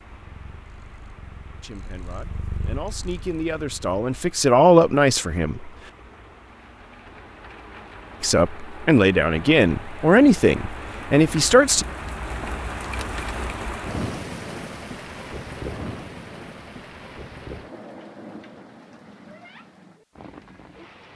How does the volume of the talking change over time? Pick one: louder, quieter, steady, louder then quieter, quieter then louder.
louder.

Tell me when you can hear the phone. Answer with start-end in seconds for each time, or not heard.
not heard.